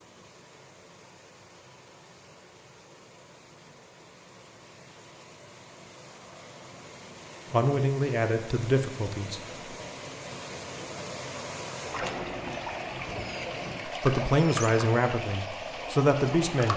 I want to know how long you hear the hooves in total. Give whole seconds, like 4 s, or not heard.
not heard.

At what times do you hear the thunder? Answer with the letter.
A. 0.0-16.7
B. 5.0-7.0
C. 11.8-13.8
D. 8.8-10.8
C.